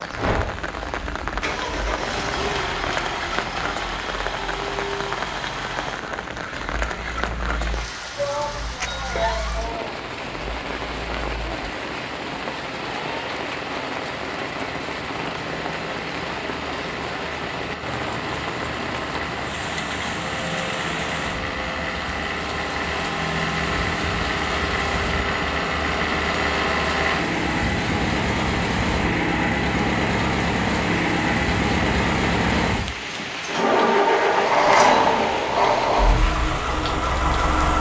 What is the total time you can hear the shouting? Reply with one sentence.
The shouting can be heard for 2 seconds in total.